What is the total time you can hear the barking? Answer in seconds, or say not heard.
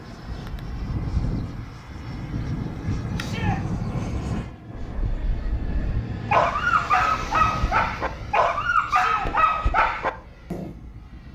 6 s.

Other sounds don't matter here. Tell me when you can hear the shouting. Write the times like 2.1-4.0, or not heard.
3.1-3.6, 8.8-9.3.